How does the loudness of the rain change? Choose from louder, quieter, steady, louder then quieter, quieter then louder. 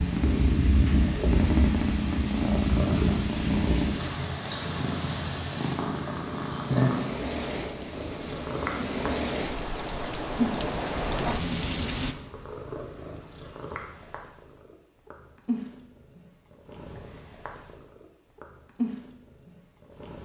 louder.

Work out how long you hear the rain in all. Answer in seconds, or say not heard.
12 s.